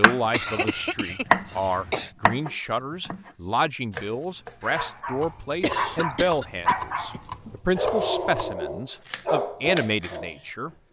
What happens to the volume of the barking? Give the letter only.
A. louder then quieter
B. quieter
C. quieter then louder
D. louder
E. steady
E.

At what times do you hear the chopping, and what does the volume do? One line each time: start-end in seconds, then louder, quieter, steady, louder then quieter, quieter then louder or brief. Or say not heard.
0.0-1.6 brief
2.2-10.8 steady.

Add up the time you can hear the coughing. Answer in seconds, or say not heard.
4 s.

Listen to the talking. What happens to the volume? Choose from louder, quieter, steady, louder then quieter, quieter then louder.
steady.